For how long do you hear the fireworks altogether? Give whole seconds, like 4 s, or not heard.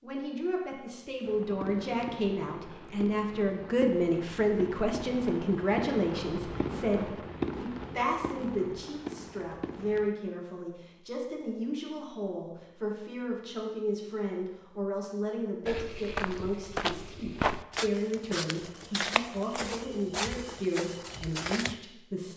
9 s.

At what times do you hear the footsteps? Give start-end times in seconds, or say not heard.
15.7-21.8.